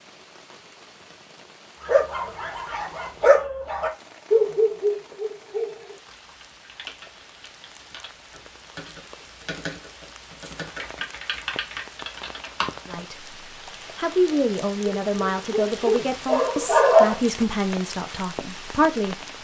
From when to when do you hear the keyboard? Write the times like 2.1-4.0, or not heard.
6.0-12.9.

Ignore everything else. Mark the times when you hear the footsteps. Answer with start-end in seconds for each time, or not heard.
not heard.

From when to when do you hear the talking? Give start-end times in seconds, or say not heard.
12.8-13.3, 13.9-19.2.